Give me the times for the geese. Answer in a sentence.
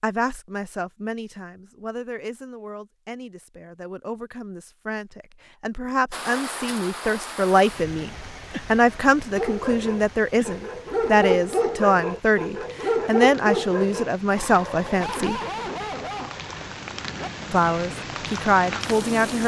The geese can't be heard in this clip.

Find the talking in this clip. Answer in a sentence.
You can hear the talking from 0.0 to 8.1 s, from 8.7 to 15.4 s and from 17.5 to 19.4 s.